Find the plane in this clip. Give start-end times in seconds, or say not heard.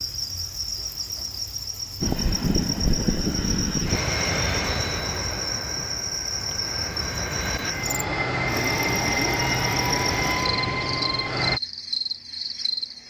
2.0-11.6.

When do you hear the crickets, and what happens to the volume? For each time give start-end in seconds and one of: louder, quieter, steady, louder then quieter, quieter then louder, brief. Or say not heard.
0.0-13.0 steady.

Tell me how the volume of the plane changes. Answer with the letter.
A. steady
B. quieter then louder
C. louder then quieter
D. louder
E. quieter
B.